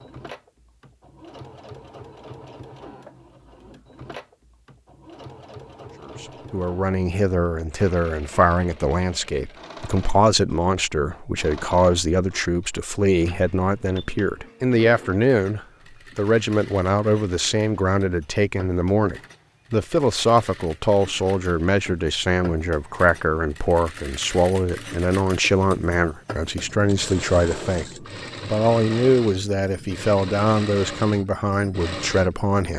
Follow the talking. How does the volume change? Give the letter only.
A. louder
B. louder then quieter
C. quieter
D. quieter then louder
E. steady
E.